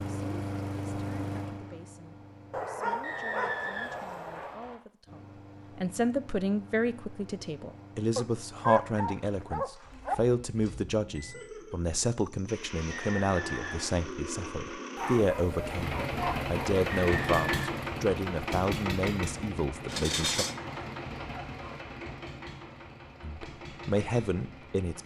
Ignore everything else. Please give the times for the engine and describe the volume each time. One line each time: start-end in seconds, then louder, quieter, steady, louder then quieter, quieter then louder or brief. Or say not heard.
0.0-2.7 brief
5.0-25.0 louder then quieter.